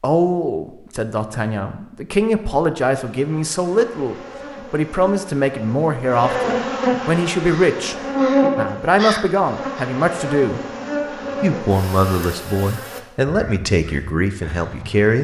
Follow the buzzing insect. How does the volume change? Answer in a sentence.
The volume of the buzzing insect goes up, then down.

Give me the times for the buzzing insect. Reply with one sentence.
You can hear the buzzing insect from 3.1 to 13.0 s.